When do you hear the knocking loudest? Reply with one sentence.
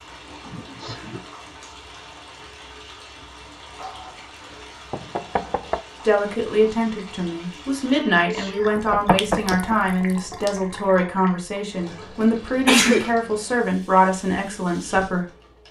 The volume of the knocking peaks at 9 seconds.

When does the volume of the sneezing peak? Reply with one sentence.
The volume of the sneezing peaks at 13 seconds.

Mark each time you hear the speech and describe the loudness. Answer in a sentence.
You can hear the speech from 6.0 to 15.2 s, at a steady volume.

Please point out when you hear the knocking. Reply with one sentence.
You can hear the knocking from 3.8 to 5.8 s and from 8.8 to 9.8 s.